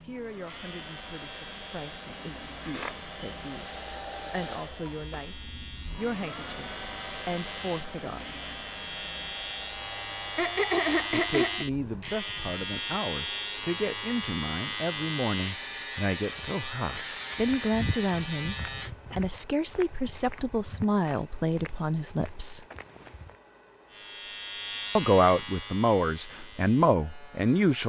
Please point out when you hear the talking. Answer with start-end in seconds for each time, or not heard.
0.0-8.4, 11.1-22.6, 24.9-27.8.